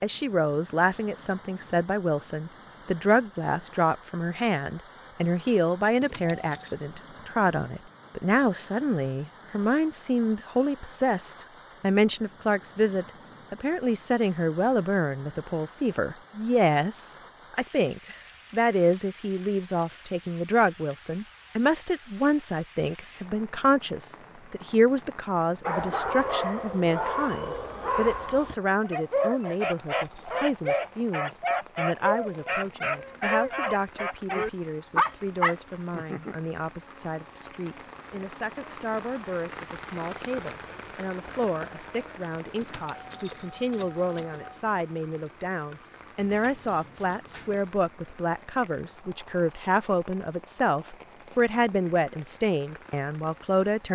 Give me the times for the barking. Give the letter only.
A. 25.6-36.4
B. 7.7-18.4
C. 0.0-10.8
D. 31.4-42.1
A.